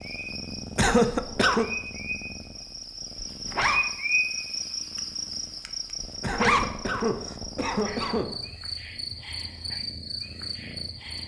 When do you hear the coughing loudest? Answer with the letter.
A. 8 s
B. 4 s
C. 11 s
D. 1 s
D.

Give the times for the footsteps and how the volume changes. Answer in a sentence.
You can't hear the footsteps here.